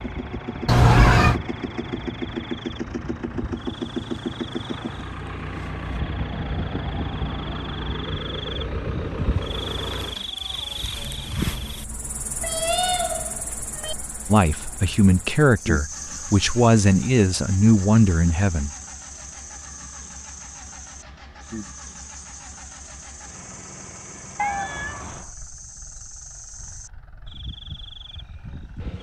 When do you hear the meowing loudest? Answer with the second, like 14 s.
1 s.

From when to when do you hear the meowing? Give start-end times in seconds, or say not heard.
0.7-1.4, 12.4-13.9, 24.4-25.3.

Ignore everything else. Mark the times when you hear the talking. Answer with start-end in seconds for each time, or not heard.
14.3-18.8.